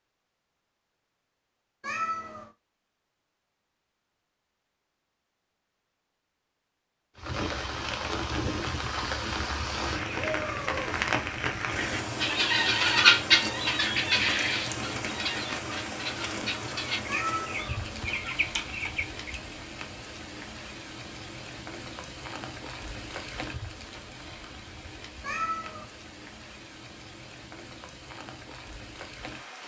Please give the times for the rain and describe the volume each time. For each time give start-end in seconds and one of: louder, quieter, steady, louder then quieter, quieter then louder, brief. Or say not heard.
7.2-29.6 quieter.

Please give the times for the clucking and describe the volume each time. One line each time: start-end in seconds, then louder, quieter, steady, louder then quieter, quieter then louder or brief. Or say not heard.
9.9-19.4 louder then quieter.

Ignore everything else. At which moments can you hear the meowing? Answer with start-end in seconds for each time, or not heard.
1.8-2.5, 17.1-18.1, 25.2-25.9.